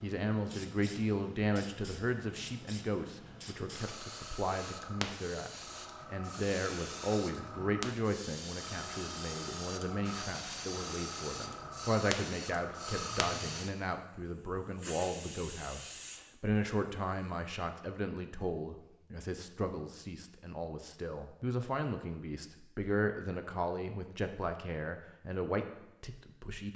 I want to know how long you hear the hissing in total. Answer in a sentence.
The hissing can be heard for 17 seconds in total.